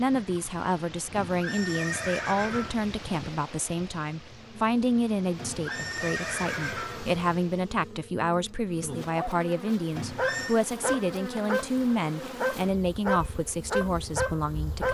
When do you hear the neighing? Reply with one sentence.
You can hear the neighing from 1.1 to 2.8 s, from 5.3 to 7.2 s and from 9.9 to 10.6 s.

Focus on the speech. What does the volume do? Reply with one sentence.
The volume of the speech stays about the same.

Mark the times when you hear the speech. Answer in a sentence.
You can hear the speech from 0.0 to 14.8 s.